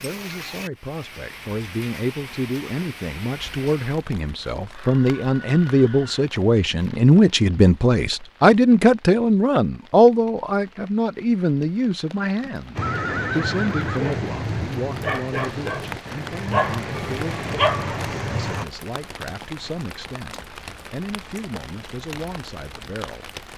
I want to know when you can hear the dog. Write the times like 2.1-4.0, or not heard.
12.8-18.6.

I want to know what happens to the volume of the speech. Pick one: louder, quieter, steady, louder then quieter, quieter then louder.
louder then quieter.